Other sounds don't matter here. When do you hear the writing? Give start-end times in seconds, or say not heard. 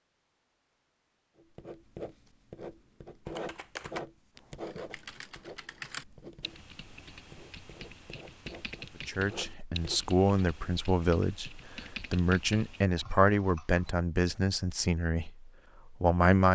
1.4-10.2.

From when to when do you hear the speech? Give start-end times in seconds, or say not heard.
9.1-16.4.